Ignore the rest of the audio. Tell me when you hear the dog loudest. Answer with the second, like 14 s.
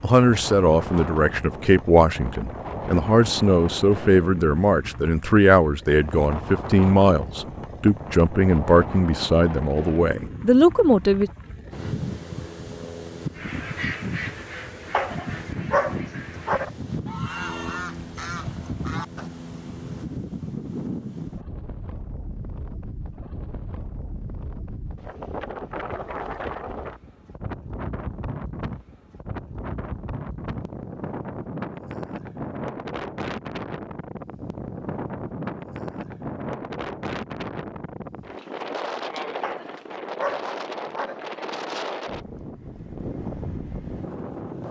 16 s.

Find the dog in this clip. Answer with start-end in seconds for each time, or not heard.
14.9-16.7, 39.4-41.2.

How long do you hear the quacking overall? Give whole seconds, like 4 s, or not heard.
6 s.